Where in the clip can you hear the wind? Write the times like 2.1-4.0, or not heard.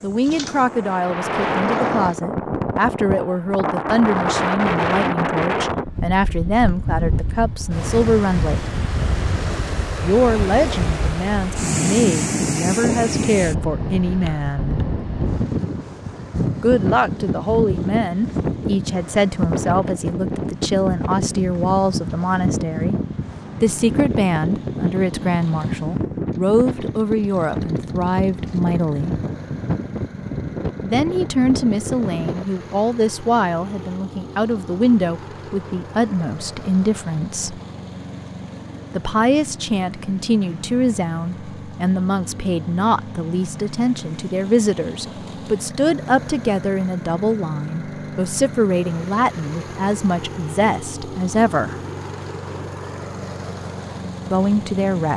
0.0-32.5.